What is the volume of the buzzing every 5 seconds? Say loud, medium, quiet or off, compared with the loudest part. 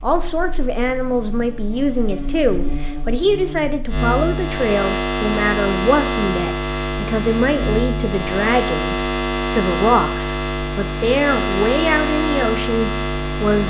medium, loud, loud.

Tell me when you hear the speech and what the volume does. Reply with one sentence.
You can hear the speech from 0.0 to 13.6 s, at a steady volume.